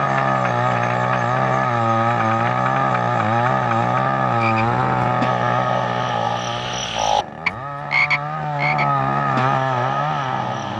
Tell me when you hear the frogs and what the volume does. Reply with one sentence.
You can hear the frogs from 0.0 to 10.7 s, getting louder then quieter.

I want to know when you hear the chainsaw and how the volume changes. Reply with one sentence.
The chainsaw can be heard from 0.0 to 10.7 s, getting quieter then louder.